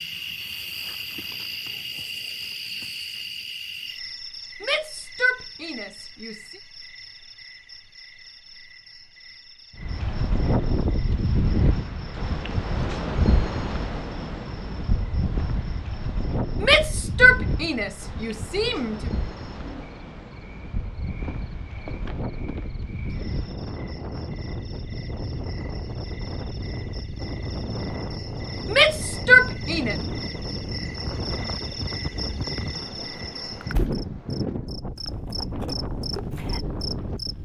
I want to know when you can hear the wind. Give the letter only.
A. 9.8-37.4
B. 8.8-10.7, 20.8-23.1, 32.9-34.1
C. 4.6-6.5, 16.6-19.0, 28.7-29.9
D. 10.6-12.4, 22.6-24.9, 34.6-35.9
A.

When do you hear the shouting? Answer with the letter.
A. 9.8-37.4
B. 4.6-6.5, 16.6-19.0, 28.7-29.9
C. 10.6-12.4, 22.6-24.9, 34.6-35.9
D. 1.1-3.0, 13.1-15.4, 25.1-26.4
B.